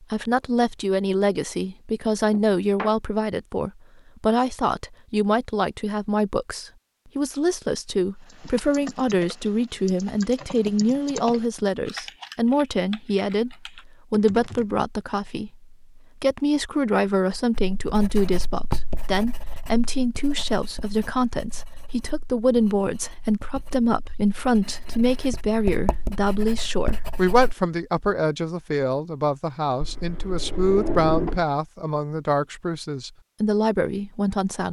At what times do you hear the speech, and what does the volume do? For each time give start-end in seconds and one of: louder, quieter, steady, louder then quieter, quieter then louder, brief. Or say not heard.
0.0-34.6 steady.